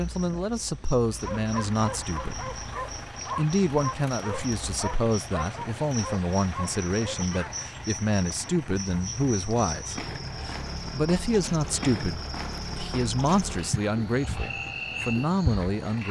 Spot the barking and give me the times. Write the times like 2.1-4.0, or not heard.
1.2-7.7.